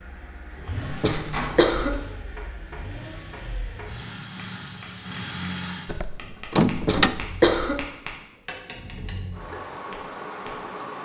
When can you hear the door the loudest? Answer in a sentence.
The volume of the door peaks at 7 seconds.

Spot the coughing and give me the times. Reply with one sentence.
The coughing can be heard from 0.9 to 2.0 s and from 6.7 to 7.8 s.